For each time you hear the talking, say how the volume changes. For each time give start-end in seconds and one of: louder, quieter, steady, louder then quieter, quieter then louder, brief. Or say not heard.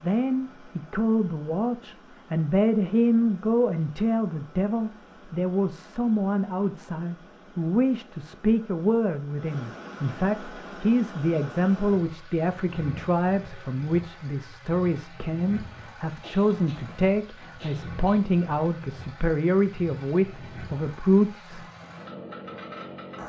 0.0-21.6 steady.